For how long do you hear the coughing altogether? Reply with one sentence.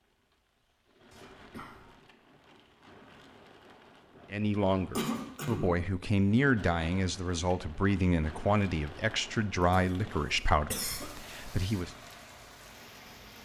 The coughing can be heard for 3 seconds in total.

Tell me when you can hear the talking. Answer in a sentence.
The talking can be heard from 4.3 to 11.9 s.